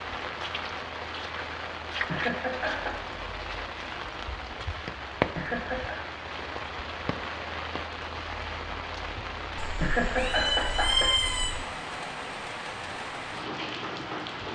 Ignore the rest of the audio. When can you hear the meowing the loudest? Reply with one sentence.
The volume of the meowing peaks at 11 seconds.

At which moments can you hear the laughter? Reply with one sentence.
The laughter can be heard from 2.0 to 3.0 s, from 5.3 to 6.0 s and from 9.8 to 11.2 s.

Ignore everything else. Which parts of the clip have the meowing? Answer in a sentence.
The meowing can be heard from 9.6 to 11.7 s.